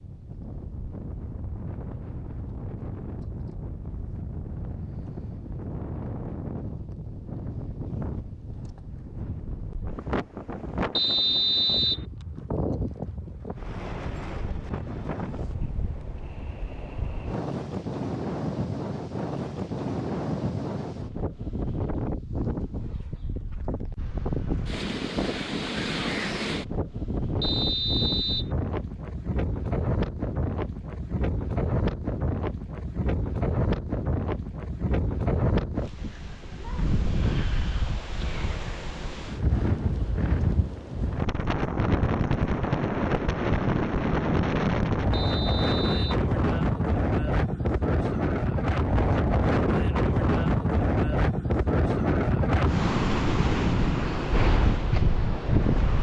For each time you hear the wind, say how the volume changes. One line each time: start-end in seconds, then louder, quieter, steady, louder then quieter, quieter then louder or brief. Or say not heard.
0.0-55.9 louder.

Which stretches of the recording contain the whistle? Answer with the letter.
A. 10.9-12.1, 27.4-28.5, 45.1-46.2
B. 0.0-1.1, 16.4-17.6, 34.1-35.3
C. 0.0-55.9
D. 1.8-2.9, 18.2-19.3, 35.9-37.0
A.